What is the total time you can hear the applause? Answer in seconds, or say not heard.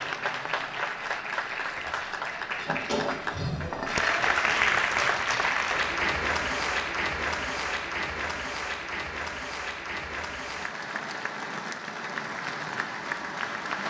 14 s.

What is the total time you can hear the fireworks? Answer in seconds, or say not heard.
not heard.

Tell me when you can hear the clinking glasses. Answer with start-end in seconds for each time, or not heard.
2.5-4.1.